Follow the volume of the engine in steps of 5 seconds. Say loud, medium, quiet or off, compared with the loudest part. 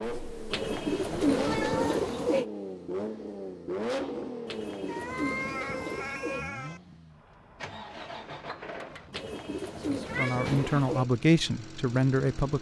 loud, medium, medium.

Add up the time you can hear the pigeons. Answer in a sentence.
You can hear the pigeons for 6 seconds altogether.